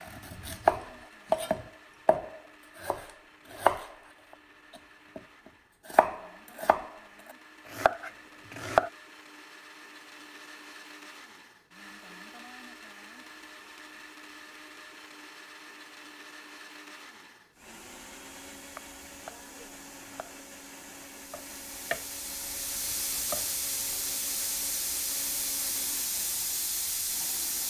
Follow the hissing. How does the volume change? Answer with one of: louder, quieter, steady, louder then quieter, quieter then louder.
louder.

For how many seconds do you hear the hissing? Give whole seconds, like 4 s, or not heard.
10 s.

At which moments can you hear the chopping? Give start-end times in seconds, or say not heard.
0.0-3.9, 5.9-6.9, 7.7-8.9, 18.8-22.1, 22.9-23.4.